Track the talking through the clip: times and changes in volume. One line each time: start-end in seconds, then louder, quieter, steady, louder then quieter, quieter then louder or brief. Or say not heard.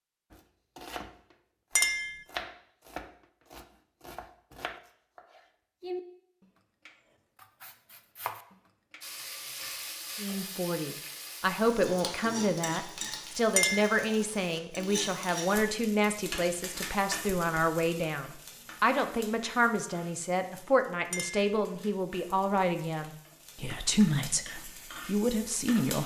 10.2-26.0 steady.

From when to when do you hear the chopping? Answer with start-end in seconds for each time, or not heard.
0.3-9.1.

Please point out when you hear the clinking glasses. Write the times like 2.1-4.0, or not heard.
1.8-2.2, 13.6-14.0, 21.1-21.6.